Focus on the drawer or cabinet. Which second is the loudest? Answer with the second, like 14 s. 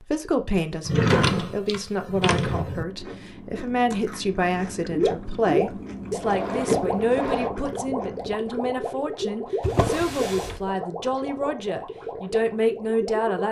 1 s.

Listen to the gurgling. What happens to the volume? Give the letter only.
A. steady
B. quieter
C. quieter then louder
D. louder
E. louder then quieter
B.